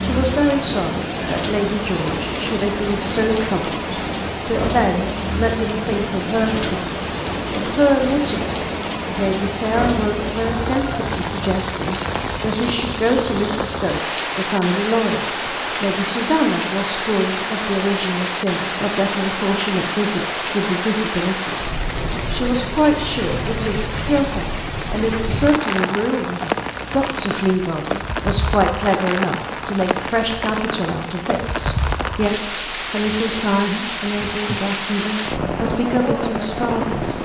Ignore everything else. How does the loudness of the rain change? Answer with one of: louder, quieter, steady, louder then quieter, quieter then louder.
steady.